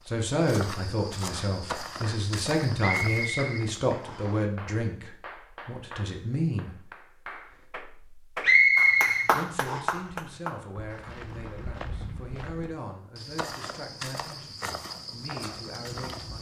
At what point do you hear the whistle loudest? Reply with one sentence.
The loudest moment of the whistle is at 9 seconds.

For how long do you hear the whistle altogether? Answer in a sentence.
You can hear the whistle for 3 seconds altogether.